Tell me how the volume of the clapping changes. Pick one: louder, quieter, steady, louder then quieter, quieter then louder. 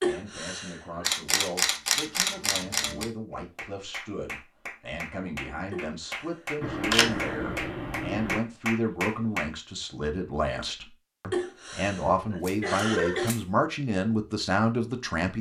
louder.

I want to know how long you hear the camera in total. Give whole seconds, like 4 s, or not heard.
5 s.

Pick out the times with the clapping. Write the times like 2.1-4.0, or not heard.
3.3-9.5.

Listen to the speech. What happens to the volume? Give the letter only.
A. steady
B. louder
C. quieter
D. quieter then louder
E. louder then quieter
B.